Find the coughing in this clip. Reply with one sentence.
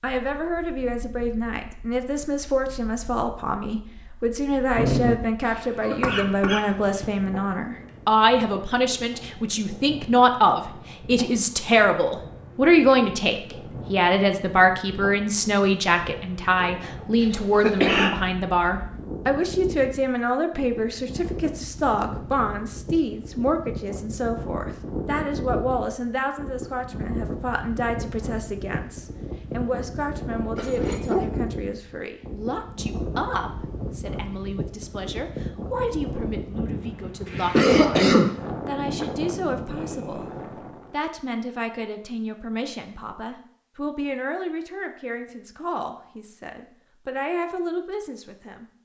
The coughing can be heard from 5.4 to 7.0 s, from 17.2 to 18.1 s and from 37.2 to 38.3 s.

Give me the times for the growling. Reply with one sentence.
The growling can be heard from 4.7 to 5.2 s and from 30.6 to 31.6 s.